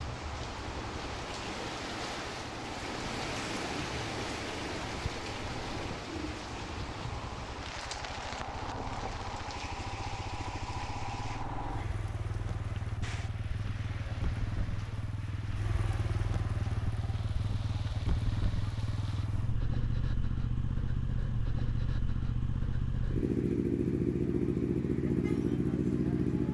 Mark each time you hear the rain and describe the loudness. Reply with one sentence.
You can hear the rain from 0.0 to 19.2 s, getting quieter.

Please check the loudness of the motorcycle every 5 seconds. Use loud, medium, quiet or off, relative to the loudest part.
quiet, quiet, medium, medium, loud, loud.